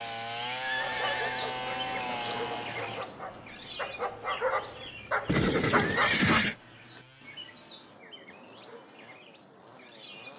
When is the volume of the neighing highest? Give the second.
6 s.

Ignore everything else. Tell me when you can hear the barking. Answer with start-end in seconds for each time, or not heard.
0.8-6.5.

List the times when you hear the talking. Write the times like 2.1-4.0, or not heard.
not heard.